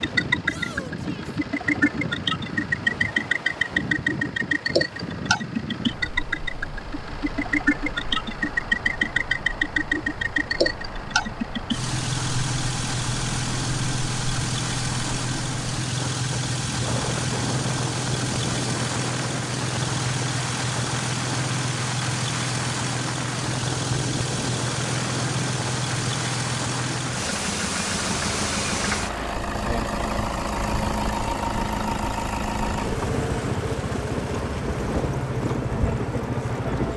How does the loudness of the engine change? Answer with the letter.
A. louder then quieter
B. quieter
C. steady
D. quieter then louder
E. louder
C.